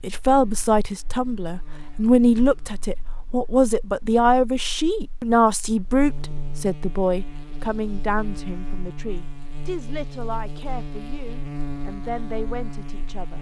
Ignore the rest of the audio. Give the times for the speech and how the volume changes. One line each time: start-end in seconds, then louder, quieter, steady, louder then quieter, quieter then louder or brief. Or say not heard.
0.0-13.3 quieter.